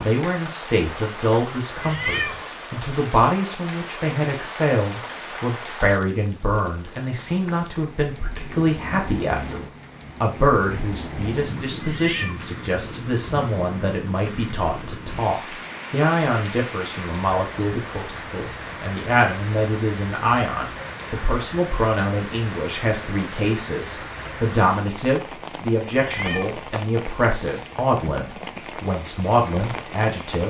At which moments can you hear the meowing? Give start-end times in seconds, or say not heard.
1.8-2.4, 11.8-12.4, 26.1-26.6.